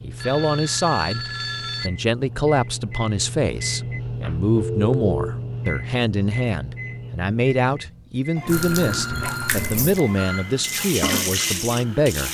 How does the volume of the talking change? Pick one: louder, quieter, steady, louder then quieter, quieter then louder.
steady.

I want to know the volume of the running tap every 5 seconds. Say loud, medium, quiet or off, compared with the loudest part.
off, loud, loud.